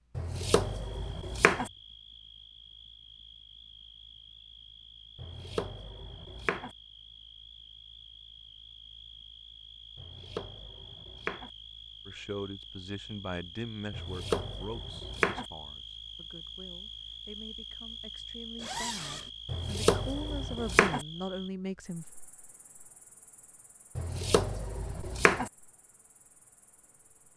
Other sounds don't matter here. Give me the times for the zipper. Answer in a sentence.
The zipper can be heard from 18.6 to 19.3 s.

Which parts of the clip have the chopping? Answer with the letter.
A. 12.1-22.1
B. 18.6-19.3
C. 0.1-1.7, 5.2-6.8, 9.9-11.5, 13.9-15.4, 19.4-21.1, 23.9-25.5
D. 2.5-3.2
C.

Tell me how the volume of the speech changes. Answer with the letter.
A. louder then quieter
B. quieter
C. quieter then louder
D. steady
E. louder
C.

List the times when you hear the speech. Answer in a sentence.
The speech can be heard from 12.1 to 22.1 s.